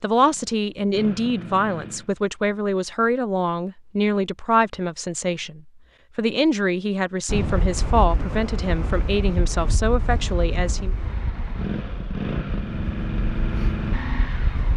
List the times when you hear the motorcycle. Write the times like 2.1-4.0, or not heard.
0.0-2.1, 10.9-14.7.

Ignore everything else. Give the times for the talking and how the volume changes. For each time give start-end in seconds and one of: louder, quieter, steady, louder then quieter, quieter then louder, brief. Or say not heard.
0.0-10.9 steady.